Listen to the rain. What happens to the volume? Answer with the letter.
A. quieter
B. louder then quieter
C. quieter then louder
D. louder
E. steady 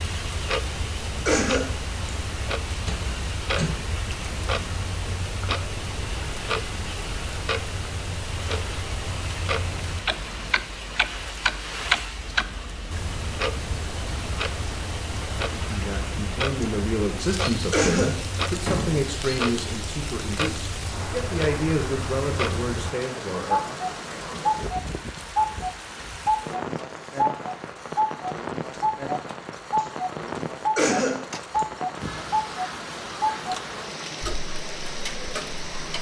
E.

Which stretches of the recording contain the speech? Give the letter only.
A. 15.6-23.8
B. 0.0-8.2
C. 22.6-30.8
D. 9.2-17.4
A.